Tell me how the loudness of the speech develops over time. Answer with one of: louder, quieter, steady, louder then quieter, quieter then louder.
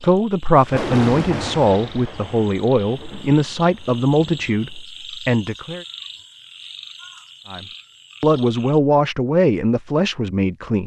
steady.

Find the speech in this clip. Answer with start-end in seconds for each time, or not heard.
0.0-5.8, 7.5-10.8.